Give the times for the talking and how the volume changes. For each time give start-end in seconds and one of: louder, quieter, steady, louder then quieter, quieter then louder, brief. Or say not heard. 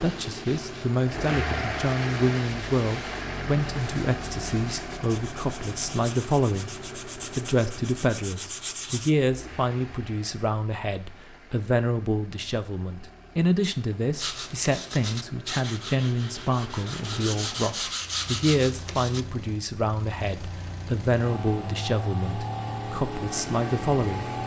0.0-6.8 steady
7.3-24.3 steady.